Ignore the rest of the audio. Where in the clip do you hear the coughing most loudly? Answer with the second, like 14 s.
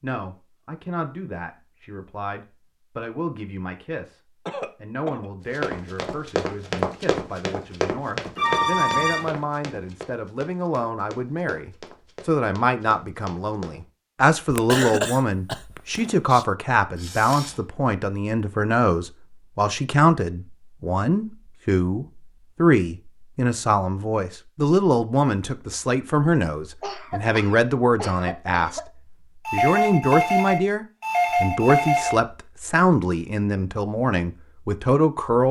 15 s.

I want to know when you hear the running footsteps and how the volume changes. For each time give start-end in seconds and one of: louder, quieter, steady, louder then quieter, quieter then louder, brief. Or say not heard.
5.5-13.8 quieter.